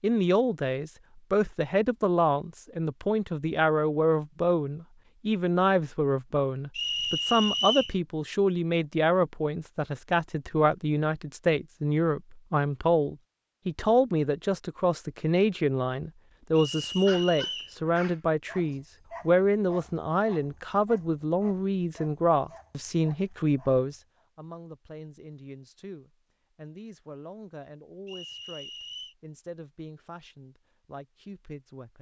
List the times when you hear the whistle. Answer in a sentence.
You can hear the whistle from 6.8 to 8.0 s, from 16.6 to 17.8 s and from 28.1 to 29.1 s.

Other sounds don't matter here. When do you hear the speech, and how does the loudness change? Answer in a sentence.
You can hear the speech from 0.0 to 31.9 s, getting quieter.